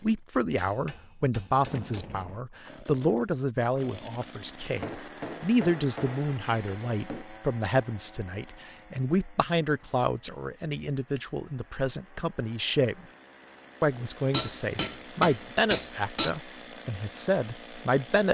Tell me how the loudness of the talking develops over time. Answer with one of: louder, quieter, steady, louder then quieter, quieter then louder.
steady.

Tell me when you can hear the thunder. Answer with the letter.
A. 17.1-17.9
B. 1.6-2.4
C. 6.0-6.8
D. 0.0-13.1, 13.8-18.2
B.